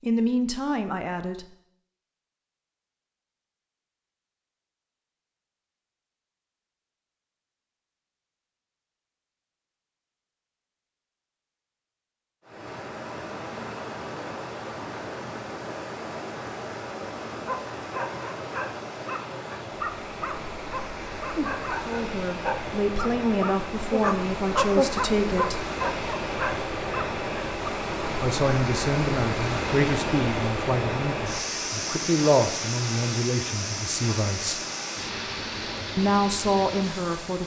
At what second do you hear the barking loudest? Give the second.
25 s.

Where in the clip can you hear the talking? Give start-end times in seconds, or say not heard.
0.0-1.4, 21.9-25.7, 28.2-34.6, 36.0-37.4.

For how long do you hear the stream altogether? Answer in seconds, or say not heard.
25 s.